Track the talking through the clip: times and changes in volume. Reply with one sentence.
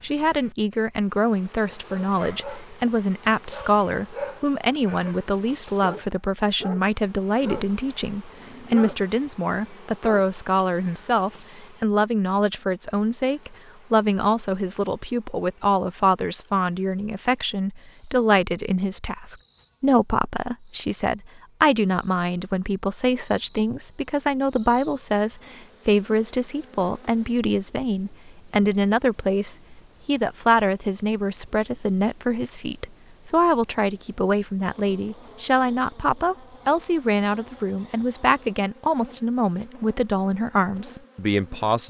The talking can be heard from 0.0 to 41.8 s, at a steady volume.